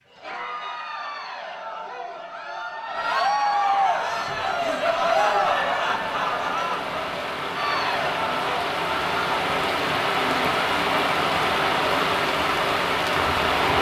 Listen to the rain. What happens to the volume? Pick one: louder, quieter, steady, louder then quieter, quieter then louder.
louder.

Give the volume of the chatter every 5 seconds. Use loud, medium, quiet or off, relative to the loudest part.
loud, loud, off.